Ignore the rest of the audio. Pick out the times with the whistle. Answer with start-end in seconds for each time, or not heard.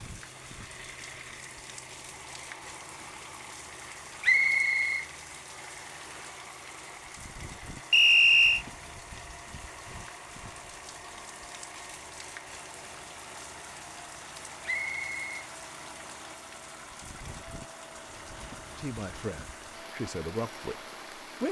4.2-5.0, 7.9-8.7, 14.7-15.2.